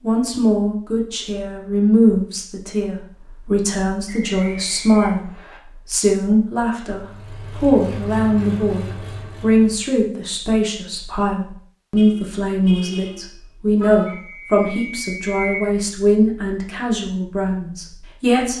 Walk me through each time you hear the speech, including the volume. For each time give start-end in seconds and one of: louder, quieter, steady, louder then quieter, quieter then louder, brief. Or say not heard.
0.0-18.5 steady.